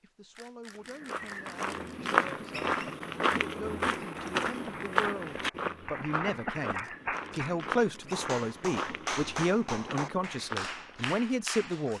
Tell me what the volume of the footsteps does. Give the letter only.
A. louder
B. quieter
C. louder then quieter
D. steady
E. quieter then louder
B.